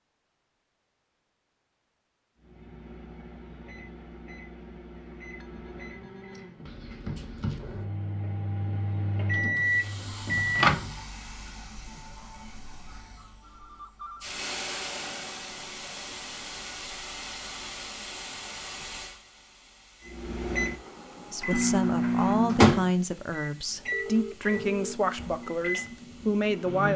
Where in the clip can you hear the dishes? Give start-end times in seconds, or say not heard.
not heard.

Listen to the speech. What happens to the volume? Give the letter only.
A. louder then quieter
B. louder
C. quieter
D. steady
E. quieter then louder
D.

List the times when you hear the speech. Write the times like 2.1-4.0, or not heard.
21.3-26.9.